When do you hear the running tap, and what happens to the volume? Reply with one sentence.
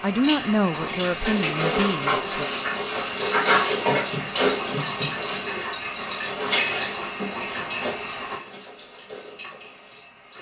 The running tap can be heard from 0.0 to 10.3 s, getting quieter.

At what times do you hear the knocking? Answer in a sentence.
The knocking can be heard from 3.9 to 5.2 s.